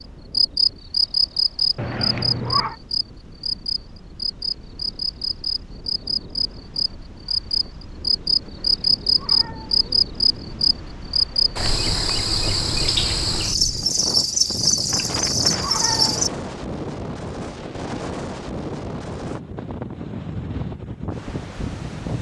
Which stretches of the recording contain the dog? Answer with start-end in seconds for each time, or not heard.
not heard.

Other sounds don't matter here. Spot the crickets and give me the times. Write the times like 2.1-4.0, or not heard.
0.3-16.3.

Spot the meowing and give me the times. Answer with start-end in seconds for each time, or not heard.
1.8-2.8, 8.4-9.9, 14.8-16.2.